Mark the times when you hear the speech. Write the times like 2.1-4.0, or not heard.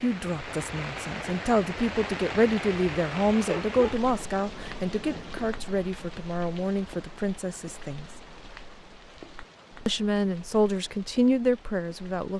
0.0-8.1, 9.8-12.3.